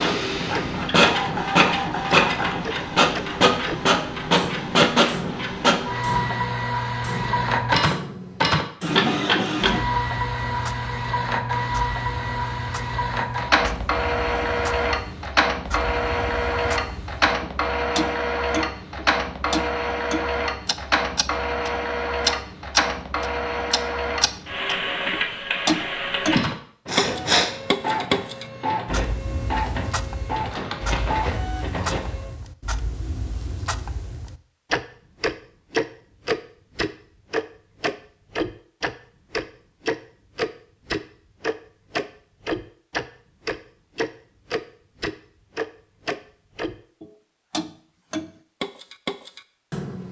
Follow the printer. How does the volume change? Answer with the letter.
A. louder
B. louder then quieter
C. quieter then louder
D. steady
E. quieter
E.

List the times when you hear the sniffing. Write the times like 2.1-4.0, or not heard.
26.4-27.5.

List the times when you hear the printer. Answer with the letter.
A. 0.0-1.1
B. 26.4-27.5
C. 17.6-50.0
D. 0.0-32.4
D.